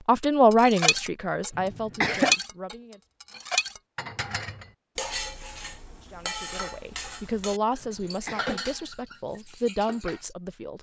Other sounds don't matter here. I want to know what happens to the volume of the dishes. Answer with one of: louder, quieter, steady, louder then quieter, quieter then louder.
quieter.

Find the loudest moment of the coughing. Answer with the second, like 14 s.
2 s.